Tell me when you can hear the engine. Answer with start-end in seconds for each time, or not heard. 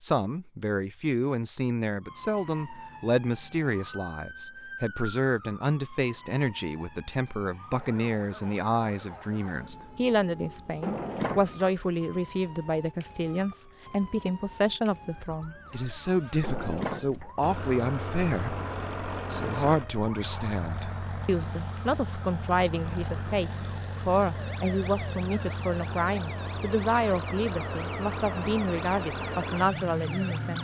17.4-30.5.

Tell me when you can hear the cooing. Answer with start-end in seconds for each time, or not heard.
not heard.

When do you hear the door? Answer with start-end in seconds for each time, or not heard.
10.8-11.7, 16.4-17.3.